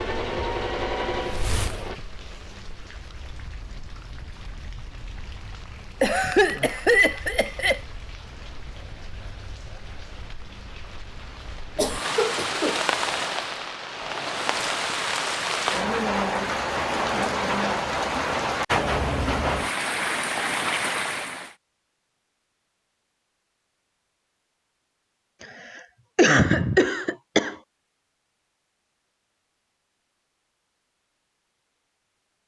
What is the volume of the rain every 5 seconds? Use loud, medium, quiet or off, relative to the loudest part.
quiet, quiet, medium, loud, loud, off, off.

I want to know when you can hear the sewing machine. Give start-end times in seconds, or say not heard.
0.0-2.0, 12.9-14.7.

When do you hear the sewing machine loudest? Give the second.
1 s.